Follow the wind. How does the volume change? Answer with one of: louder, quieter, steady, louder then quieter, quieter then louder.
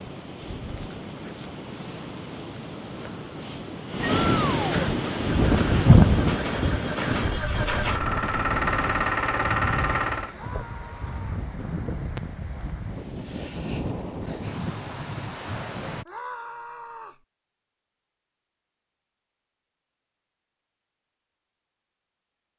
louder then quieter.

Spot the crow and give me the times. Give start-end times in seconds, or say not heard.
not heard.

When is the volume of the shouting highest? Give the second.
4 s.